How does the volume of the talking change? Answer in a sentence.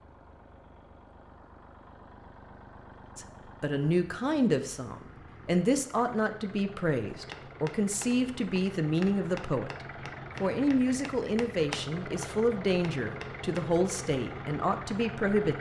The loudness of the talking stays about the same.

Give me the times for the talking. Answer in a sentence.
The talking can be heard from 3.1 to 9.7 s and from 10.4 to 15.5 s.